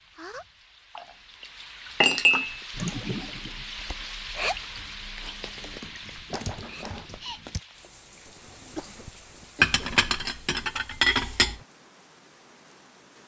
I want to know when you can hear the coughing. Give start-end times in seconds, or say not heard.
2.8-3.6, 8.2-10.1.